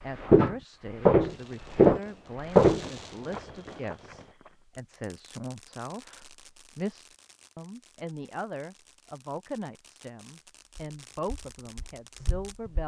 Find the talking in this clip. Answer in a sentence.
The talking can be heard from 0.0 to 12.8 s.